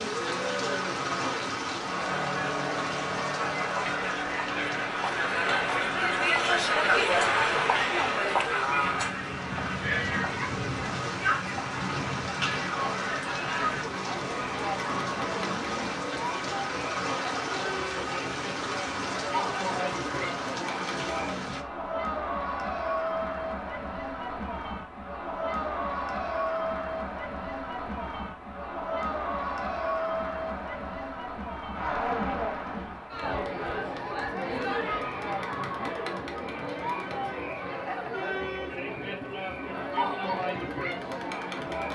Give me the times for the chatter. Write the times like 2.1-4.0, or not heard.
0.0-41.8.